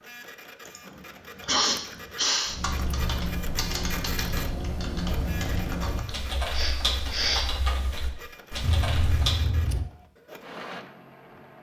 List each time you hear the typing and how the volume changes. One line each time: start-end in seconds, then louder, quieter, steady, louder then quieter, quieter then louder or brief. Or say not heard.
2.5-9.5 steady.